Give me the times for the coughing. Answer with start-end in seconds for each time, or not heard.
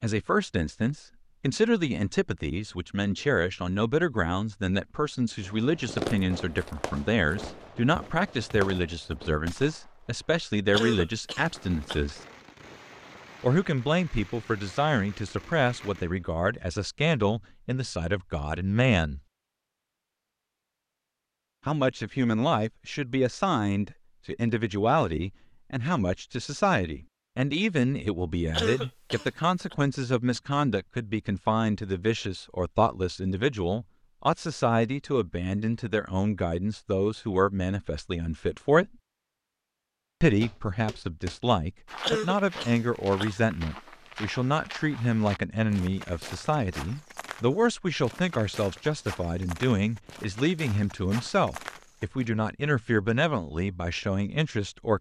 10.7-12.0, 28.5-29.8, 42.0-43.4.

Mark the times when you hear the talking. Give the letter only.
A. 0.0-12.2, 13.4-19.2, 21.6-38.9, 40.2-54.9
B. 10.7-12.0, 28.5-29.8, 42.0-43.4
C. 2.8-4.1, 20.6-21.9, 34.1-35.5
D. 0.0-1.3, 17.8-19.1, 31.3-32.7
A.